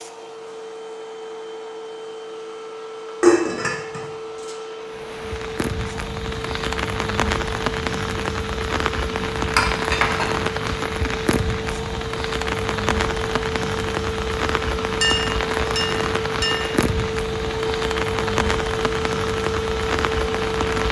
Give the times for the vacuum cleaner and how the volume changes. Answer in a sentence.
You can hear the vacuum cleaner from 0.0 to 20.8 s, getting louder.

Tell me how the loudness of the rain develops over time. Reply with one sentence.
The loudness of the rain stays about the same.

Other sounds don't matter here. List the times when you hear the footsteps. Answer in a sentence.
The footsteps can't be heard in this clip.